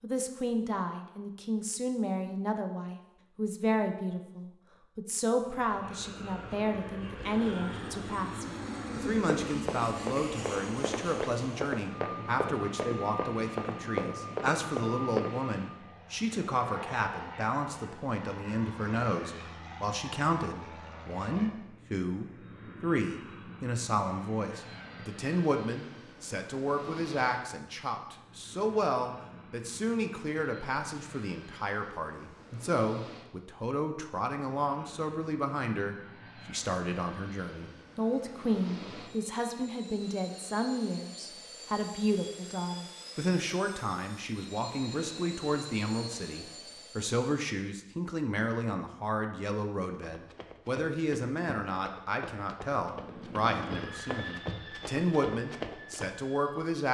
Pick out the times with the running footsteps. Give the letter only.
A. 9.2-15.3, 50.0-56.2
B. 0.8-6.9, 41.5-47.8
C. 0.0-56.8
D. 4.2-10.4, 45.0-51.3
A.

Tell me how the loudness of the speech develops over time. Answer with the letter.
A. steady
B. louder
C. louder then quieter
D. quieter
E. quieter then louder
A.